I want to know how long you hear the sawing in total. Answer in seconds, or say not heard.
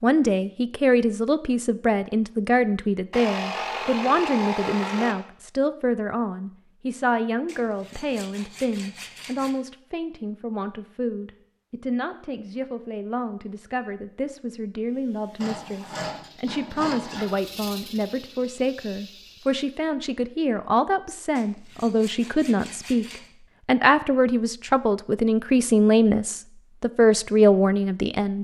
8 s.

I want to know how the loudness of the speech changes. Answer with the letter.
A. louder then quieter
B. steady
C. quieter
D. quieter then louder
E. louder
D.